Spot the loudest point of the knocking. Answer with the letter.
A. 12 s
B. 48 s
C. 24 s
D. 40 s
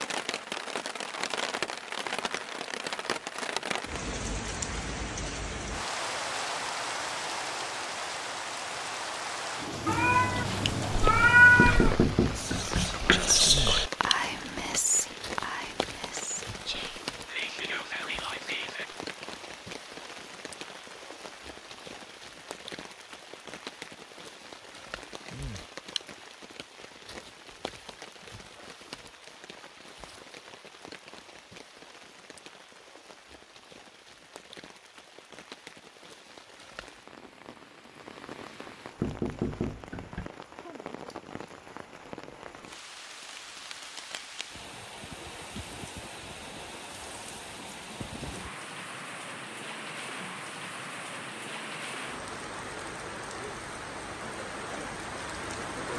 A.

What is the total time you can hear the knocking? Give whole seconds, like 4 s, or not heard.
3 s.